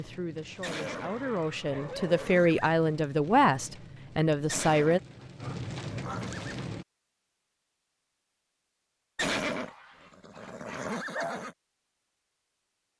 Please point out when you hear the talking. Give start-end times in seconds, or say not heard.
0.0-5.0.